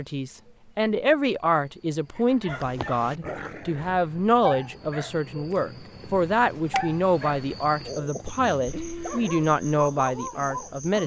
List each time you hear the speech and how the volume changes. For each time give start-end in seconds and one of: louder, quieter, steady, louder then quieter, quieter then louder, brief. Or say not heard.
0.0-11.0 steady.